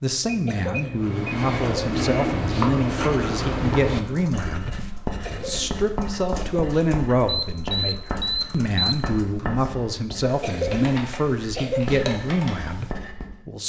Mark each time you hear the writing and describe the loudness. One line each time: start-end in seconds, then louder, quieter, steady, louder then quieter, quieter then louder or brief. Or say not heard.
0.9-13.4 quieter.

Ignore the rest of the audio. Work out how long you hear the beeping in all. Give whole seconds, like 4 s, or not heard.
3 s.